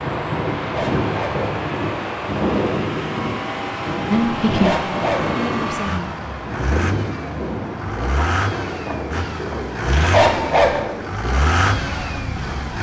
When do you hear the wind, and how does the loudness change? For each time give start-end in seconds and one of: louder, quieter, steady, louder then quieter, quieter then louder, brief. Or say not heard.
0.0-12.7 quieter.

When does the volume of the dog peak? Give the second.
10 s.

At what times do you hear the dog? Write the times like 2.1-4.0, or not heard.
0.6-1.4, 4.5-5.3, 9.8-10.8.